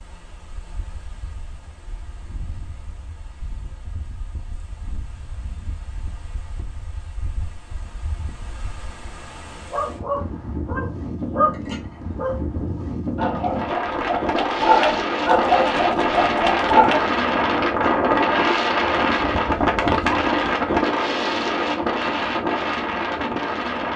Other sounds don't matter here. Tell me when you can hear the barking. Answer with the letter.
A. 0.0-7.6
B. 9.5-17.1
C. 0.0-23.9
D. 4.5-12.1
B.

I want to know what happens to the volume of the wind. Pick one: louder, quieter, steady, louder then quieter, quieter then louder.
louder.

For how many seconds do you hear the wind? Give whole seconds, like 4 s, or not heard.
24 s.